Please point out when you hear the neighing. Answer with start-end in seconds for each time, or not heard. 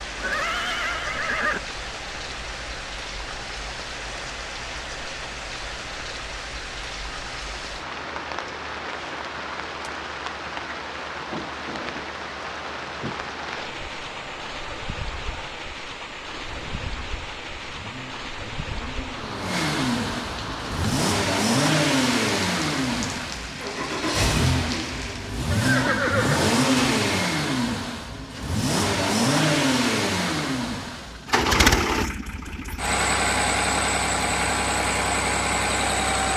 0.1-1.6, 25.5-26.6.